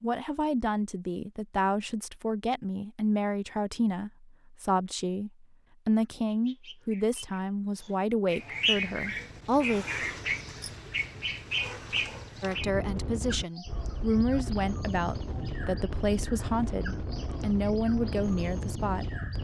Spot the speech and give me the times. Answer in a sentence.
You can hear the speech from 0.0 to 9.8 s and from 12.4 to 19.1 s.